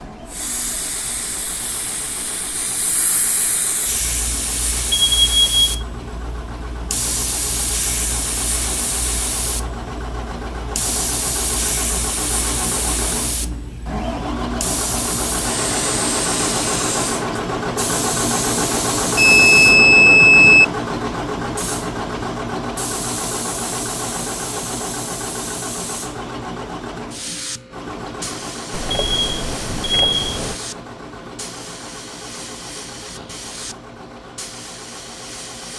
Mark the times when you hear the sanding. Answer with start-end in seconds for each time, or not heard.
not heard.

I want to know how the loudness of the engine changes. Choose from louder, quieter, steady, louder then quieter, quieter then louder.
louder then quieter.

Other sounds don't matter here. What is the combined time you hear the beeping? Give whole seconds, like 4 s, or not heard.
4 s.